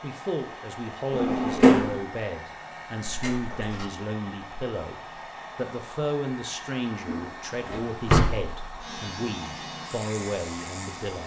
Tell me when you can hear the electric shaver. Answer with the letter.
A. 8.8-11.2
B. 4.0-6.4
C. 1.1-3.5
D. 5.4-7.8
A.